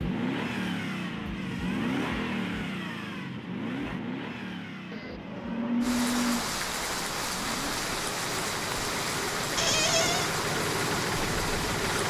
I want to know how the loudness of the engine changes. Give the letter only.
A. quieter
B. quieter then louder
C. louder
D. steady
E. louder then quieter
B.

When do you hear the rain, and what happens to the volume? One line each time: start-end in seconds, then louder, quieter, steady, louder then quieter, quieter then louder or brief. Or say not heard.
5.8-12.0 steady.